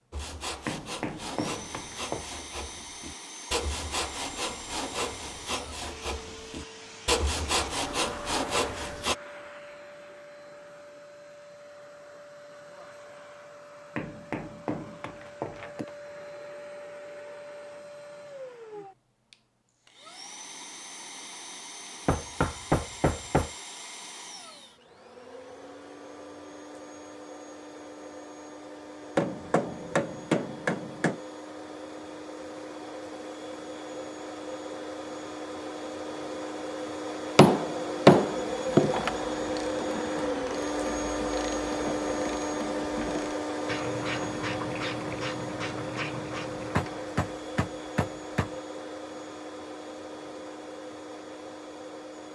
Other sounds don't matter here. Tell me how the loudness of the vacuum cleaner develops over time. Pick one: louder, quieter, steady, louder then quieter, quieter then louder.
louder.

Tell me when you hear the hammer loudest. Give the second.
38 s.